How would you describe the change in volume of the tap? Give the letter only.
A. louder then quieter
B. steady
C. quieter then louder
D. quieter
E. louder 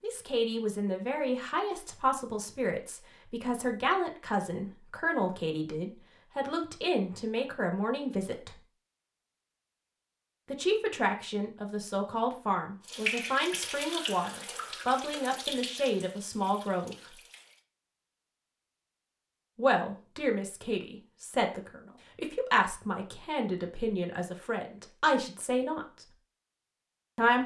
D.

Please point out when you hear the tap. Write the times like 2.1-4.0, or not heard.
12.8-17.6.